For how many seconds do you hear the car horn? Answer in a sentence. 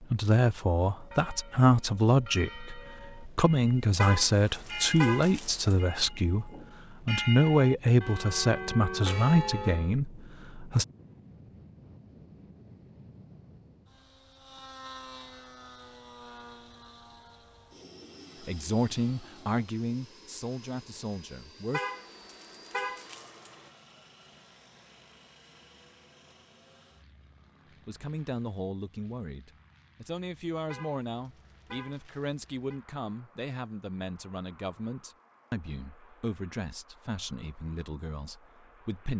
You can hear the car horn for 6 seconds altogether.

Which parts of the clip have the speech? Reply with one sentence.
You can hear the speech from 0.0 to 10.8 s, from 18.4 to 21.8 s and from 27.9 to 39.1 s.